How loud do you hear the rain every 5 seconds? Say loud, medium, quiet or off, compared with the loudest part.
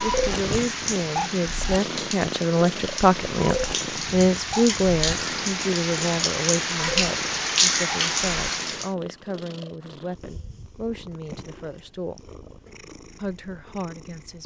medium, loud, off.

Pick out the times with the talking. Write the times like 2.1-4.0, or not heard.
0.0-12.2, 13.2-14.4.